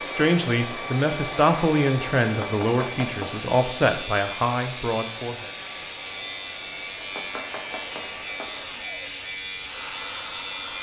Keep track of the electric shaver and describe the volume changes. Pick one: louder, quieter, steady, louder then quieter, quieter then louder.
louder.